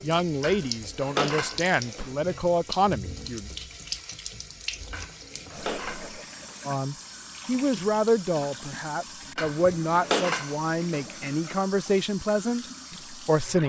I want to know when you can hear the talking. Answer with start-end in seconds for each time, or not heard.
0.0-3.5, 6.7-13.6.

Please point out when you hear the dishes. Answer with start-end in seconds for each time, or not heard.
0.4-2.4, 4.9-6.6, 9.3-11.1.